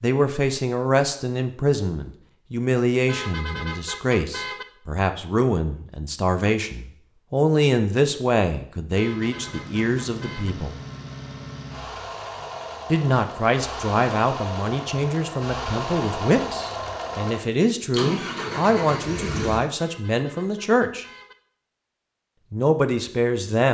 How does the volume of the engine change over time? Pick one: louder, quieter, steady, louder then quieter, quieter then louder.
louder.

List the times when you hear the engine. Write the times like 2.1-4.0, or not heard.
9.2-19.7.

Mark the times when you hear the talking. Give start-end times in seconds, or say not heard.
0.0-10.8, 12.9-21.1, 22.5-23.6.